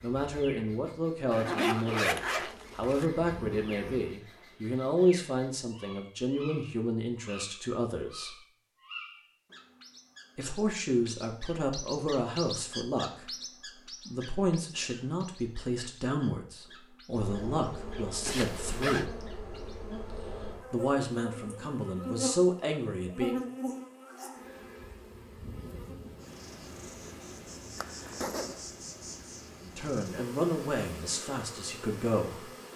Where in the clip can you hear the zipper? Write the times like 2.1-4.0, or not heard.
1.3-3.0, 18.2-19.1, 27.8-28.6.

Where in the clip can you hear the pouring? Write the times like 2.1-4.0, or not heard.
not heard.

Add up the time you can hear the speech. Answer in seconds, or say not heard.
23 s.